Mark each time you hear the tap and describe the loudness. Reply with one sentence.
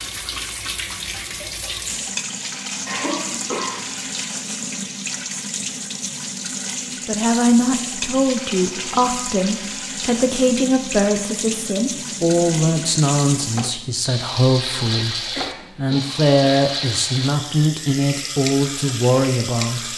The tap can be heard from 0.0 to 19.9 s, at a steady volume.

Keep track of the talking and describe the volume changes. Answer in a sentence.
The loudness of the talking stays about the same.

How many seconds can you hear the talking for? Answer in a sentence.
You can hear the talking for 13 seconds altogether.